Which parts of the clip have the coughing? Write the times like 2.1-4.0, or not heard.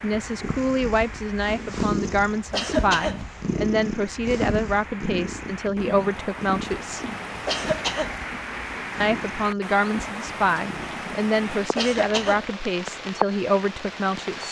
2.5-3.2, 7.5-8.2, 11.8-12.4.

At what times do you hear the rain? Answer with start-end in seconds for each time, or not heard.
0.0-14.4.